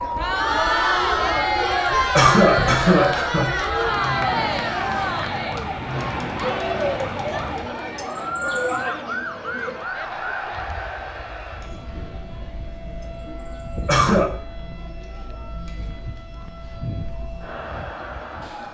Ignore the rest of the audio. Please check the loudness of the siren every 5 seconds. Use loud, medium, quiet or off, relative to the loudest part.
loud, loud, medium, medium.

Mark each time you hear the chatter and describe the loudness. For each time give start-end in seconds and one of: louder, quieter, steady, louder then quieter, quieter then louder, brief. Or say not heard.
0.0-18.7 quieter.